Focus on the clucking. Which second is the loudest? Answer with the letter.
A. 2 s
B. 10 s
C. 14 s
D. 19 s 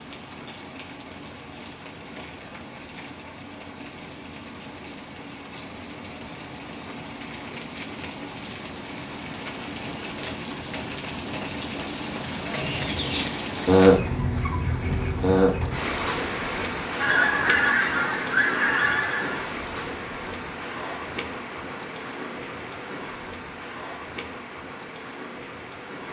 C.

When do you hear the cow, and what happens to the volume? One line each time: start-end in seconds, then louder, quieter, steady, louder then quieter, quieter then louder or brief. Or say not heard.
not heard.